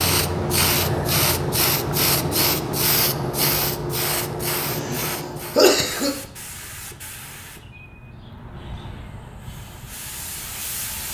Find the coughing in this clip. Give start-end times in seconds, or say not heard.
4.7-6.1.